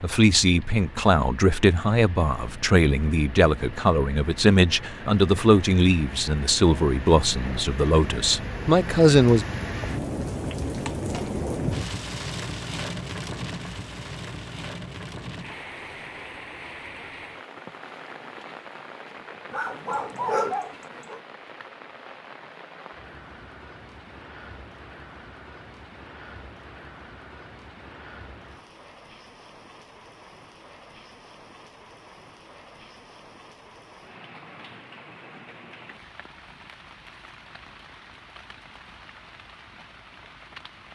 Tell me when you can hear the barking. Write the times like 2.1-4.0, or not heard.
19.5-21.2.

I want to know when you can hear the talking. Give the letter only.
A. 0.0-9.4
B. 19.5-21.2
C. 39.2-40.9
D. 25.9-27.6
A.